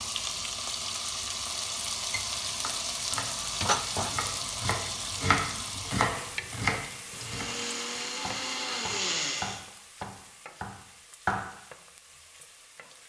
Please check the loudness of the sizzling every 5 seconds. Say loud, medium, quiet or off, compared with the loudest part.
loud, medium, quiet.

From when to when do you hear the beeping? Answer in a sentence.
You can't hear the beeping here.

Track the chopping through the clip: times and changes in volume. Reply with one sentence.
You can hear the chopping from 2.5 to 11.5 s, getting louder then quieter.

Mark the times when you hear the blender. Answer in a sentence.
You can hear the blender from 7.1 to 9.7 s.